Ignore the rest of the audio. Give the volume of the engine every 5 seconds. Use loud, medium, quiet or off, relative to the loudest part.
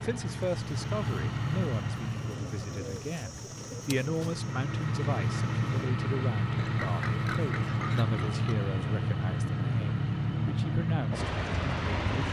medium, loud, loud.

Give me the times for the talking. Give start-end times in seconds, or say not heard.
0.0-12.2.